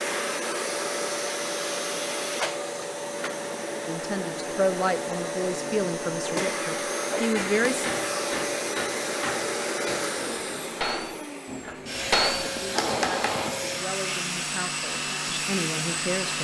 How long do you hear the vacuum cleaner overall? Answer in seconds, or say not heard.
16 s.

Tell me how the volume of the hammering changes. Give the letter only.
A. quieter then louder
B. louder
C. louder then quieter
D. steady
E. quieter
B.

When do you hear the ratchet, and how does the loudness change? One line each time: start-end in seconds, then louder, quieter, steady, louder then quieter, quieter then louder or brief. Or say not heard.
not heard.